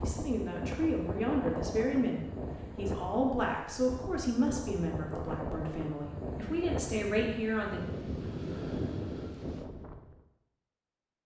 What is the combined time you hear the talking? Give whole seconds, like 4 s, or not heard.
8 s.